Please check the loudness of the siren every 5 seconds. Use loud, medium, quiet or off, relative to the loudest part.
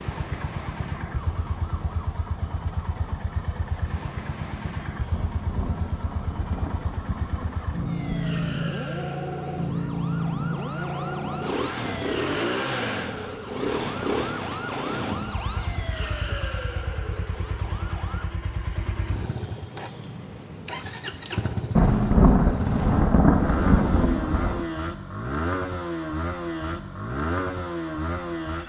medium, medium, loud, loud, off, off.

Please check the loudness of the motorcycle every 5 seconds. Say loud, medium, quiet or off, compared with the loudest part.
medium, loud, loud, medium, loud, loud.